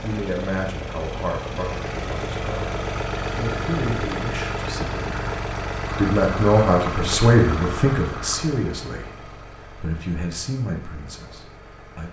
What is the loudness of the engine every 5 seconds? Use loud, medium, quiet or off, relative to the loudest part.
loud, loud, quiet.